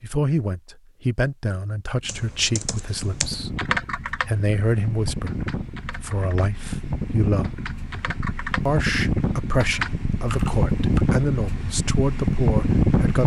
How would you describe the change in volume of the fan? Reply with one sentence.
The loudness of the fan goes up.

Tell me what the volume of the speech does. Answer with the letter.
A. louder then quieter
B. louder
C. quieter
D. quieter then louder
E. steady
E.